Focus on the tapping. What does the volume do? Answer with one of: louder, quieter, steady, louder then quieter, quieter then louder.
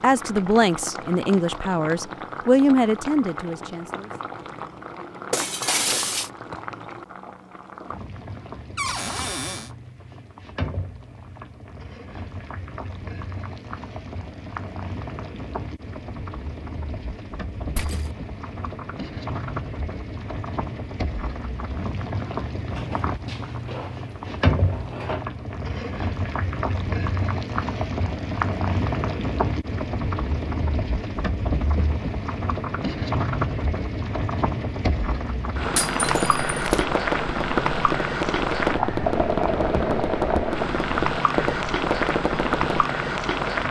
steady.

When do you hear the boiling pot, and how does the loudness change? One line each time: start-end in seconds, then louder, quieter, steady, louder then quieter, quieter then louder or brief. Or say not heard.
0.0-43.6 louder.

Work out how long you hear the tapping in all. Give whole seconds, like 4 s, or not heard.
7 s.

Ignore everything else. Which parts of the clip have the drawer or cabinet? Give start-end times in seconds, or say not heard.
8.8-9.7, 22.7-25.2.